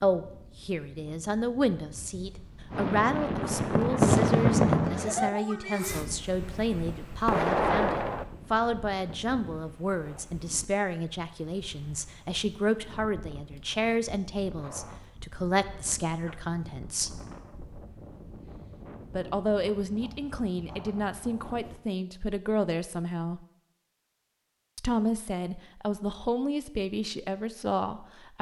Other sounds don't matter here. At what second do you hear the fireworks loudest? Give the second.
4 s.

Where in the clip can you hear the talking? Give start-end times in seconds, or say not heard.
0.0-17.2, 19.1-23.4, 24.8-28.3.